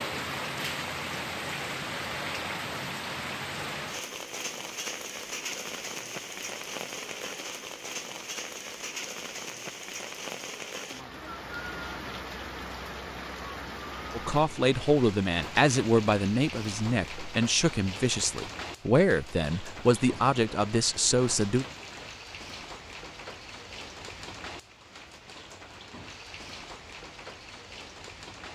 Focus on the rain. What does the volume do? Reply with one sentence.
The loudness of the rain goes down.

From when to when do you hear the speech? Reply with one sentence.
You can hear the speech from 14.2 to 21.6 s.